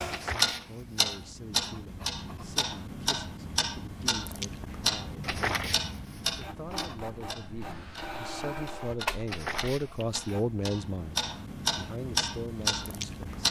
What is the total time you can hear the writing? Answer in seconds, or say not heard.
5 s.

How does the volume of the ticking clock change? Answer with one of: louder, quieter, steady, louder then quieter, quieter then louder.
quieter then louder.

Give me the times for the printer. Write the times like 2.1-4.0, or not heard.
6.2-10.6.